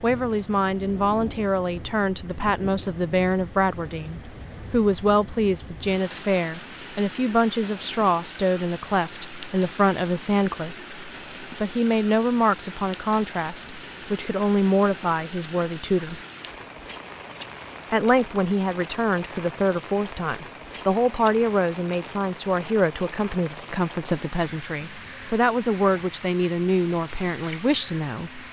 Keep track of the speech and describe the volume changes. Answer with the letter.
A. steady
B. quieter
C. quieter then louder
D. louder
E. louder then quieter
A.